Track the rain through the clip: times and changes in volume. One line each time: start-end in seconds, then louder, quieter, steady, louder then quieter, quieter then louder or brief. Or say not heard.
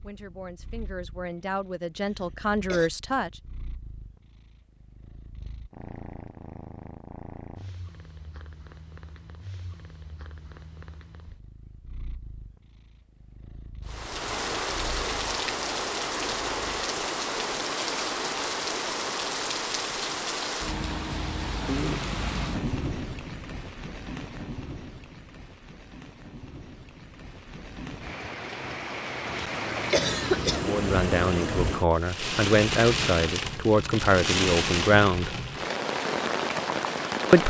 13.8-37.4 quieter then louder.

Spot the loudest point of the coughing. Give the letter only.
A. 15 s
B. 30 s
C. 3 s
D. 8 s
B.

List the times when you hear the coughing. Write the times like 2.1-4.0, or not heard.
2.0-2.9, 29.9-30.8.